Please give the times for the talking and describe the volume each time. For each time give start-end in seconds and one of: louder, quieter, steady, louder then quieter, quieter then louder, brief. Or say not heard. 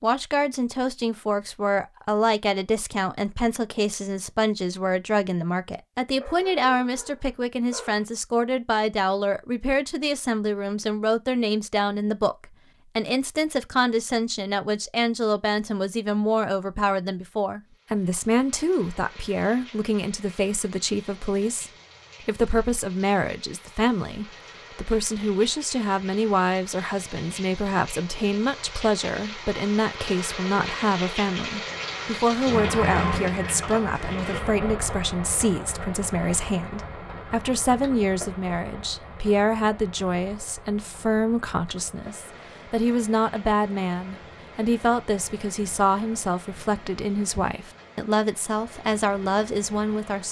0.0-50.2 steady.